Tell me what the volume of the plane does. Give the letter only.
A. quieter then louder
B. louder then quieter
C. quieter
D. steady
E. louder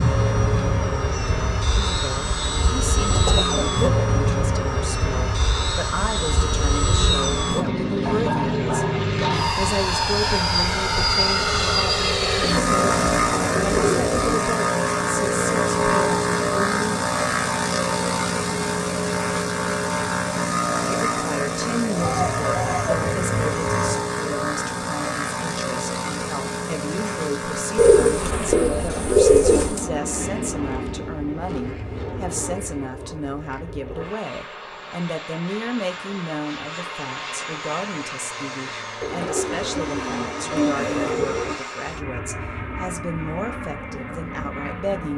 C.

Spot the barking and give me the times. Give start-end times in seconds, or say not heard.
8.1-9.6.